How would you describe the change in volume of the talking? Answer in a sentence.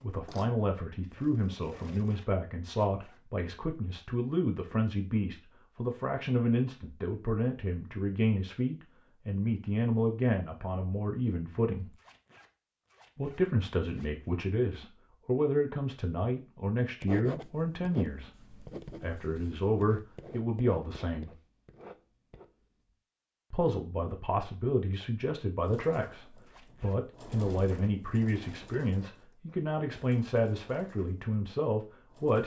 The volume of the talking stays about the same.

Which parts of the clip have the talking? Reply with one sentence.
The talking can be heard from 0.0 to 11.9 s, from 13.2 to 21.4 s and from 23.5 to 32.4 s.